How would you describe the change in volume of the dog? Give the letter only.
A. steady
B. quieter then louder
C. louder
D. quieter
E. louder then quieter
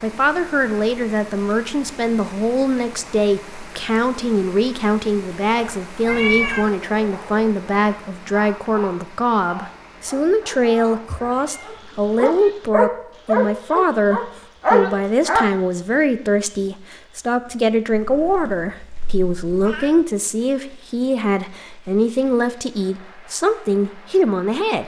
C.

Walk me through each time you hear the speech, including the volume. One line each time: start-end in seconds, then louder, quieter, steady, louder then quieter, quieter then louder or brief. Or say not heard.
0.0-24.8 steady.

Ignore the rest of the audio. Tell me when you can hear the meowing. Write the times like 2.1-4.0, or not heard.
6.0-6.7, 11.1-12.5, 17.9-20.1.